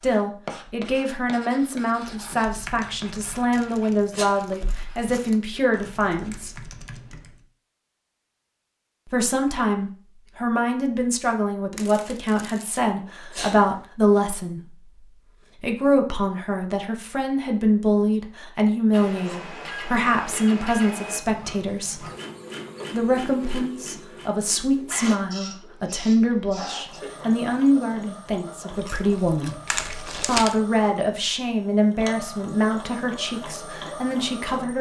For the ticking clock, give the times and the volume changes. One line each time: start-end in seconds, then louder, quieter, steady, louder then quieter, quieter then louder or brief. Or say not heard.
not heard.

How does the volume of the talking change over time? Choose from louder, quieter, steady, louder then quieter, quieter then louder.
steady.